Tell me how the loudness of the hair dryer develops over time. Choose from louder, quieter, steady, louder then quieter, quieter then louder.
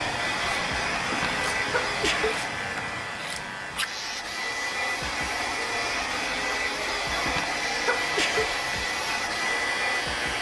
quieter then louder.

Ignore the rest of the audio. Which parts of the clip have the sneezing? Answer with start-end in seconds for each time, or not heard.
1.0-2.9, 7.1-8.5.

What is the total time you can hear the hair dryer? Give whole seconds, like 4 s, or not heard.
10 s.